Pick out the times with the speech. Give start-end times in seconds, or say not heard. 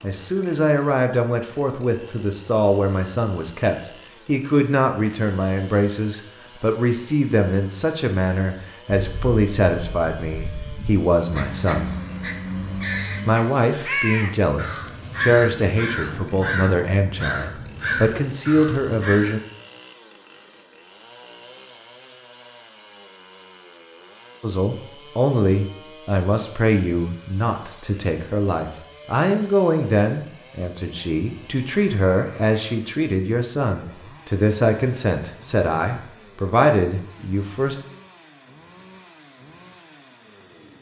0.0-11.9, 13.2-19.4, 24.4-37.8.